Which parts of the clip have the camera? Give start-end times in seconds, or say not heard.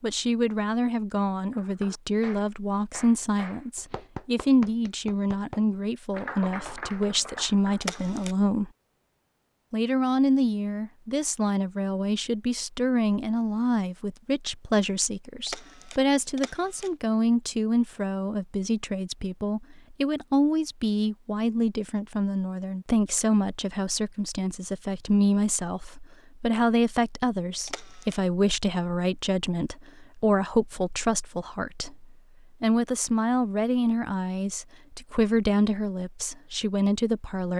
7.8-8.3, 15.4-16.9, 27.6-28.2.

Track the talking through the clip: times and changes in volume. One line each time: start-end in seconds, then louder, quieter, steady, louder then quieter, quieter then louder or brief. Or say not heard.
0.0-8.7 steady
9.7-37.5 steady.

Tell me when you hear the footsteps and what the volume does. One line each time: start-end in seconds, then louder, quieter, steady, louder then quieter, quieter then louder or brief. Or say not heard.
not heard.